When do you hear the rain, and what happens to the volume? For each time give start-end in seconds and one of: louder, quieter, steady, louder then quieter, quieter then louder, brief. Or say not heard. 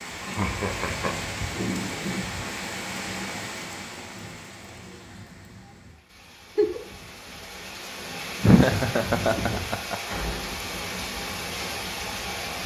0.0-12.6 quieter then louder.